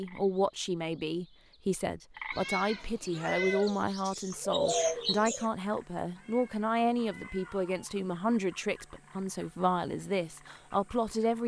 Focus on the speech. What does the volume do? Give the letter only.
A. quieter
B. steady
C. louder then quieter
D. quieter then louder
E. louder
B.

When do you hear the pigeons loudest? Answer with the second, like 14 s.
5 s.